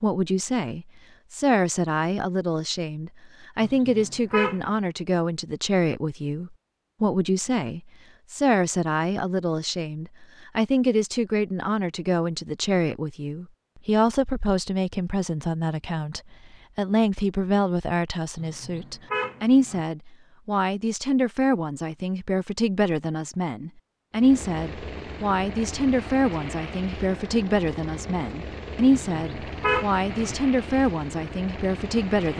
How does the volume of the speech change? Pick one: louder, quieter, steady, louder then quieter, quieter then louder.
steady.